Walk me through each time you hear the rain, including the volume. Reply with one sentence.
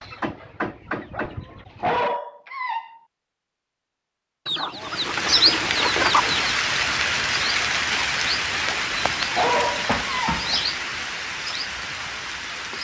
You can hear the rain from 4.8 to 12.7 s, getting quieter.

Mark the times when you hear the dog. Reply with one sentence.
You can hear the dog from 1.1 to 3.0 s and from 8.7 to 10.3 s.